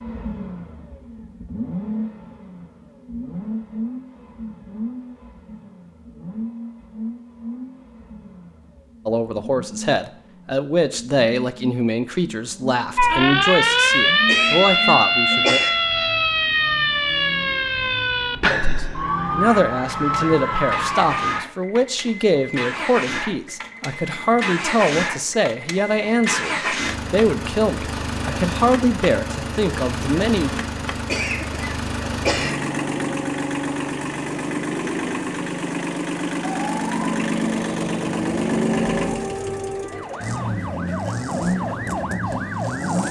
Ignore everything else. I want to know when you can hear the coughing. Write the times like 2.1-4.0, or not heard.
14.2-15.7, 31.1-32.5.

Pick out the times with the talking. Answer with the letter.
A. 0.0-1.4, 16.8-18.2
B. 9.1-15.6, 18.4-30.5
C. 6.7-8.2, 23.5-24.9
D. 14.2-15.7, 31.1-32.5
B.